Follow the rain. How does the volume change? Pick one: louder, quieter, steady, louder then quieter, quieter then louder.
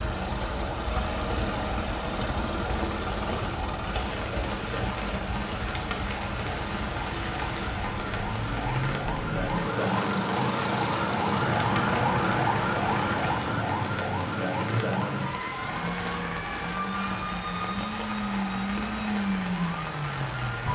steady.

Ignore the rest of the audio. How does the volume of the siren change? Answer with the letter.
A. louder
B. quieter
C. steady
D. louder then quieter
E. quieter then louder
D.